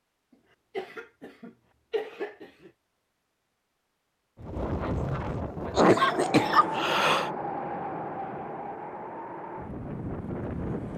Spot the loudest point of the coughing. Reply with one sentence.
The loudest moment of the coughing is at 6 seconds.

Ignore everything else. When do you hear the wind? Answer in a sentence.
The wind can be heard from 4.3 to 10.9 s.